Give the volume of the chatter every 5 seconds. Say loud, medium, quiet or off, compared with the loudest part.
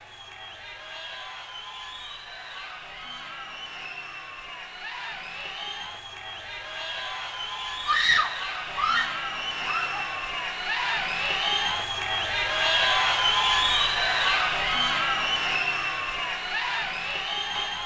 quiet, medium, loud, loud.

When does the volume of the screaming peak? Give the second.
8 s.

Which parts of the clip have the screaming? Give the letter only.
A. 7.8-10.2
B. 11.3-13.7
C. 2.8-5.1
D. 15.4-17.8
A.